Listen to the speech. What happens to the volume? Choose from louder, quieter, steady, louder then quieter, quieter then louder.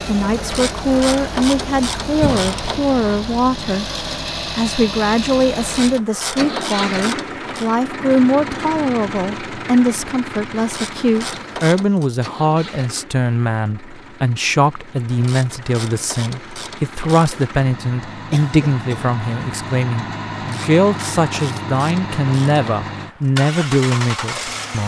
steady.